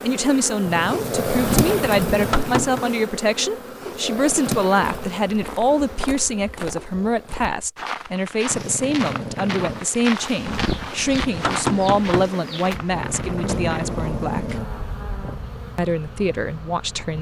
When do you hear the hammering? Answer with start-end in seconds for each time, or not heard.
1.3-2.9, 10.4-12.3.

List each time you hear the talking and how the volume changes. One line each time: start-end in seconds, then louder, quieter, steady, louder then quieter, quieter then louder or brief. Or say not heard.
0.0-14.6 steady
15.8-17.1 brief.